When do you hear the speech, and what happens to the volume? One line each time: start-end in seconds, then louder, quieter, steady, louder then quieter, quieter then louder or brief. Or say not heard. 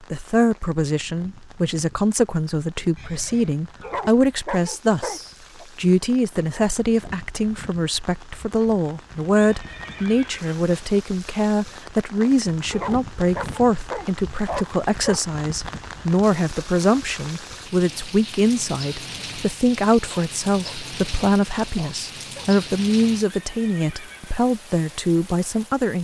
0.1-25.9 steady.